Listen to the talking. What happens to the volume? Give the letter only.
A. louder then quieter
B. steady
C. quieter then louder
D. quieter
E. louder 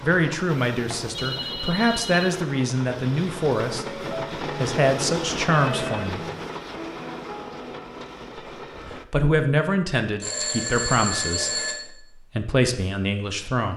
B.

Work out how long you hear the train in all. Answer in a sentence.
You can hear the train for 9 seconds altogether.